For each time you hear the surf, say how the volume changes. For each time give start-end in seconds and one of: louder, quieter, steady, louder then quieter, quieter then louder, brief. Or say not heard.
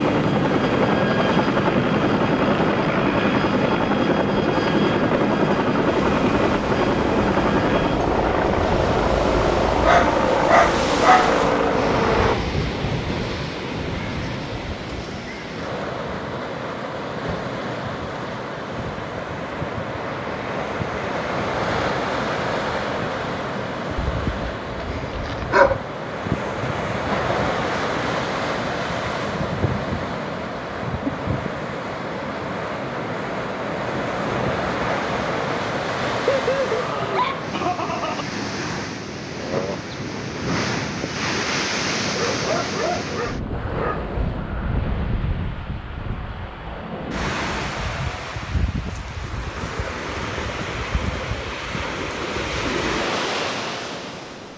0.0-54.5 steady.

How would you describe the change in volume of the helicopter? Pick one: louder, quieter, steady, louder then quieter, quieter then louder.
steady.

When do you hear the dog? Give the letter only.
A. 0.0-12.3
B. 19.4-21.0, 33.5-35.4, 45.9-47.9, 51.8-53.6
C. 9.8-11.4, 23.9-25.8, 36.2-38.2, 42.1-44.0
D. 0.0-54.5
C.